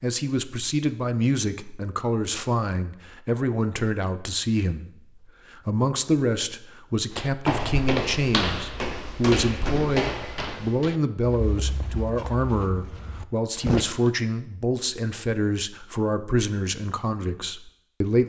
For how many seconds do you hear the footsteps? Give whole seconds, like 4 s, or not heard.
7 s.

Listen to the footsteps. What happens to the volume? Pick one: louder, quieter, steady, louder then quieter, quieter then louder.
quieter.